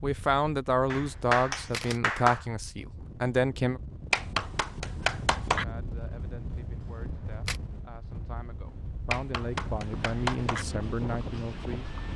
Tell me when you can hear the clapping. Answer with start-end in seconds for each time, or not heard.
0.9-2.5, 4.1-5.7, 9.1-10.7.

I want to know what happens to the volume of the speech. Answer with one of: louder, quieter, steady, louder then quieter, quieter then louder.
quieter then louder.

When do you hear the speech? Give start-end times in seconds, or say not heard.
0.0-3.8, 5.5-11.9.